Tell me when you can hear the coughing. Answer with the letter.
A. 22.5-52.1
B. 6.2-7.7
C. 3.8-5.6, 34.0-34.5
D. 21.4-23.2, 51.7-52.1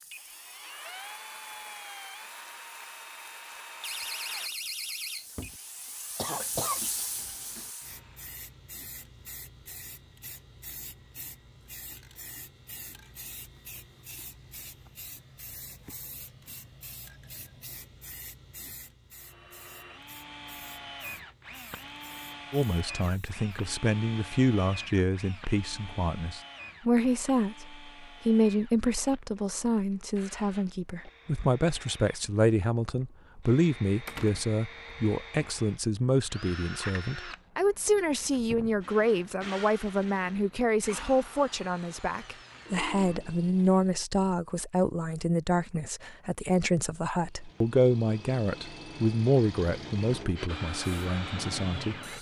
B.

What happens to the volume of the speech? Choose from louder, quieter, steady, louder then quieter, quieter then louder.
steady.